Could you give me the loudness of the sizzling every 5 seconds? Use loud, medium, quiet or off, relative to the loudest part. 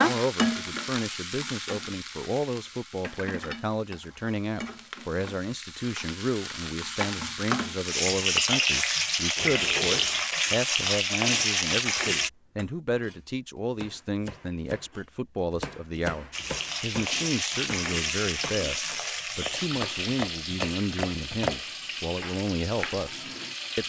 medium, loud, loud, medium, medium.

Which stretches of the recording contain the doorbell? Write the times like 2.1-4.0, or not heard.
not heard.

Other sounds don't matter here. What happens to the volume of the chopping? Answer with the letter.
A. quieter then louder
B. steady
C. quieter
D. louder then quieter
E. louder
E.